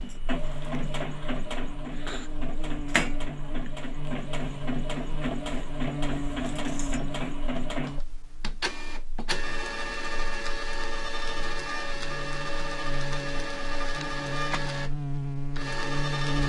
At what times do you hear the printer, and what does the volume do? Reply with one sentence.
You can hear the printer from 0.0 to 16.4 s, at a steady volume.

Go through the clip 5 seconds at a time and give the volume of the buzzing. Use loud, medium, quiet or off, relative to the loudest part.
medium, medium, medium, loud.